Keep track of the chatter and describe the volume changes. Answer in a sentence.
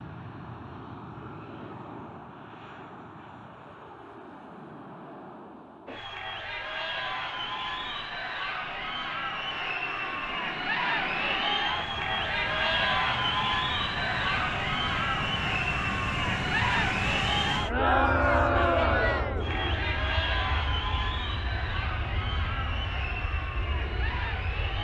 The loudness of the chatter goes up, then down.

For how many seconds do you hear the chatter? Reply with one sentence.
You can hear the chatter for 19 seconds altogether.